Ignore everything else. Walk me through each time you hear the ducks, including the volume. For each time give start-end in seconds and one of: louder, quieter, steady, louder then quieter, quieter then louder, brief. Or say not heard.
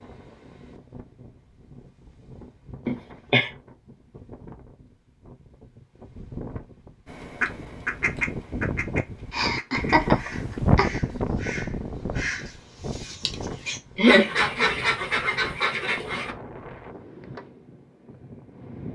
7.0-16.4 quieter then louder.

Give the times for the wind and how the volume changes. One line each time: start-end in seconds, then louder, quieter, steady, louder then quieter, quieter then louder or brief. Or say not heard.
0.0-18.9 louder then quieter.